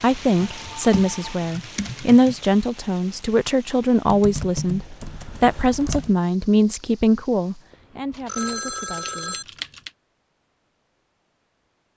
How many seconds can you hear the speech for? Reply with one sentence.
The speech can be heard for 10 seconds in total.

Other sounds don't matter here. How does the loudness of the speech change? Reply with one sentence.
The volume of the speech goes down.